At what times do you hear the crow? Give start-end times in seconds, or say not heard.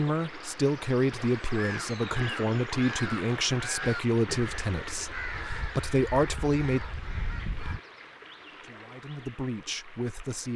1.5-7.8.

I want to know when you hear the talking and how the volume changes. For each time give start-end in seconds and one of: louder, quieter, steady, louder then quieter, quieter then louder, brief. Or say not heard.
0.0-6.8 steady
8.5-10.5 brief.